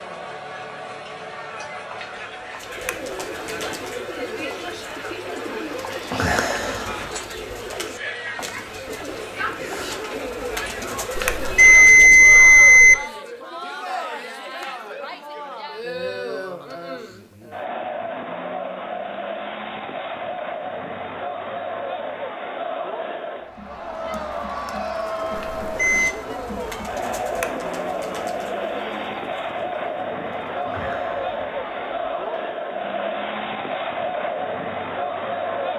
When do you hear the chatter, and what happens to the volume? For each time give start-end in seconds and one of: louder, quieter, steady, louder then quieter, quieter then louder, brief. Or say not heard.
0.0-35.7 louder.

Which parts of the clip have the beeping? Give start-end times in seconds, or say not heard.
11.2-12.9, 25.4-26.1.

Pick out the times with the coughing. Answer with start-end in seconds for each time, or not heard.
not heard.